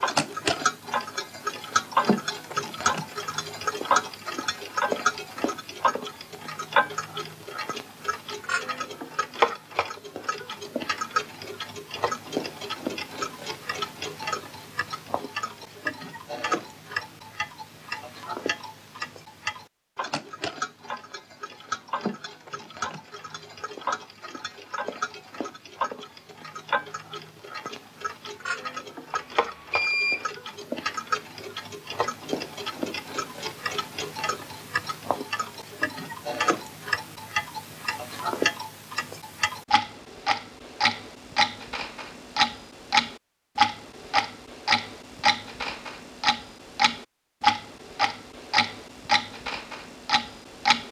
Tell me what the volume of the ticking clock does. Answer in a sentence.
The volume of the ticking clock goes down, then up.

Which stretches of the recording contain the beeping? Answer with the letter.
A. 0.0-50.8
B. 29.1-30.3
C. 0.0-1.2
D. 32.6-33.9
B.